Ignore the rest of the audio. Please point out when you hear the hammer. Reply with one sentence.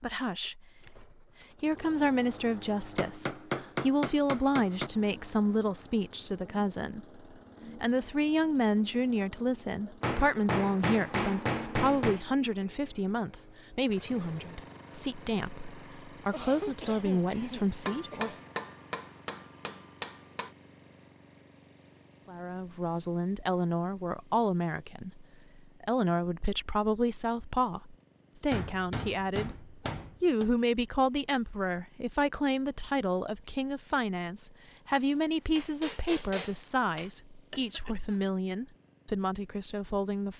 The hammer can be heard from 3.0 to 4.9 s, from 10.0 to 12.2 s, from 17.9 to 20.5 s, from 28.5 to 30.4 s and from 35.0 to 37.1 s.